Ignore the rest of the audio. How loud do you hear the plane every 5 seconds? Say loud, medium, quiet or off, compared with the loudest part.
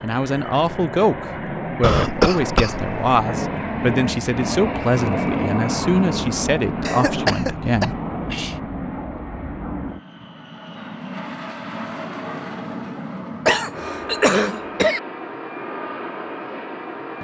loud, loud, medium, medium.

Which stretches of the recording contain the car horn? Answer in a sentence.
The car horn can't be heard in this clip.